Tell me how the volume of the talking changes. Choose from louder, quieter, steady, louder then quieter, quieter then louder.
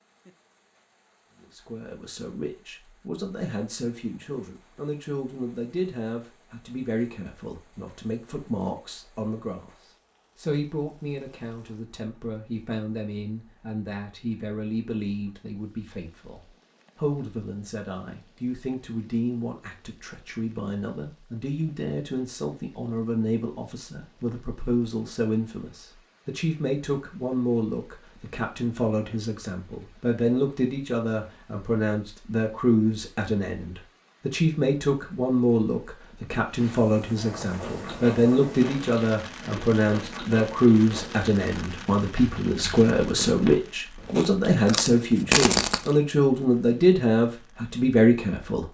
louder.